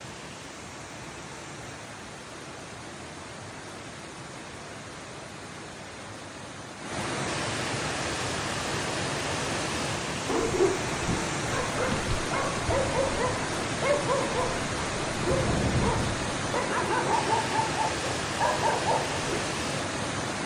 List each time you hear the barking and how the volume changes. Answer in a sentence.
The barking can be heard from 10.2 to 19.2 s, at a steady volume.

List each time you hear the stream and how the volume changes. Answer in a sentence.
You can hear the stream from 0.0 to 20.4 s, getting louder.